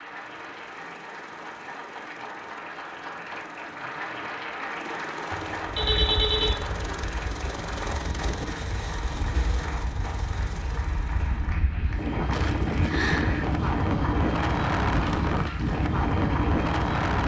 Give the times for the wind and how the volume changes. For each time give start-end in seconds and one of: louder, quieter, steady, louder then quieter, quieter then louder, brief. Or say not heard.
5.7-17.2 louder.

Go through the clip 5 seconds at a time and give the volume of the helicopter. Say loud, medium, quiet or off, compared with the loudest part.
medium, loud, medium, off.